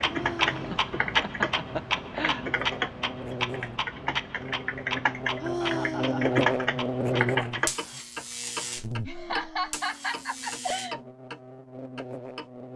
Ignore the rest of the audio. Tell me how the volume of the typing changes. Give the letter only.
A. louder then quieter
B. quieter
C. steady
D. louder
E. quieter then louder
E.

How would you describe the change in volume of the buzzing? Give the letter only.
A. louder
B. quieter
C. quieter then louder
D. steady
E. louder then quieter
E.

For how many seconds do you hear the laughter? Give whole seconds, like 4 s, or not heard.
5 s.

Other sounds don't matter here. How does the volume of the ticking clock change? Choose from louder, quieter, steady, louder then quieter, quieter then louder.
quieter.